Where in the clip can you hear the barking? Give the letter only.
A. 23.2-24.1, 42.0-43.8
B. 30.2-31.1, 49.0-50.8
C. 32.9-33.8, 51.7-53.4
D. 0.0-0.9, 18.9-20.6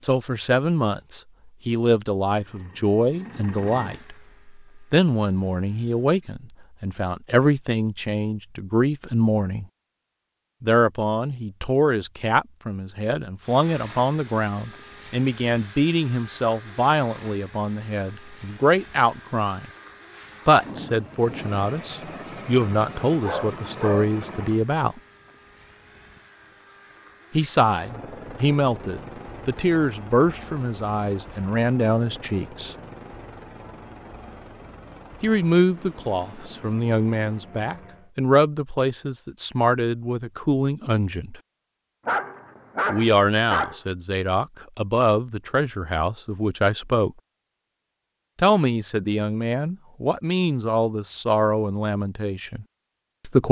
A.